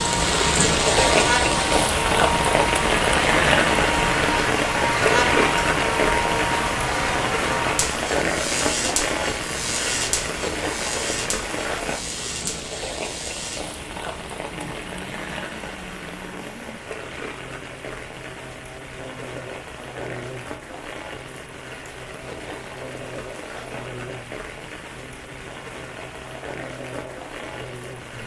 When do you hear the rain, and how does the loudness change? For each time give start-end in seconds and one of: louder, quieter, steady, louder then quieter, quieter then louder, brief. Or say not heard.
0.0-28.2 quieter.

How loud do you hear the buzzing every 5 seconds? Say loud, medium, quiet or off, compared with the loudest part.
loud, loud, medium, quiet, quiet, quiet.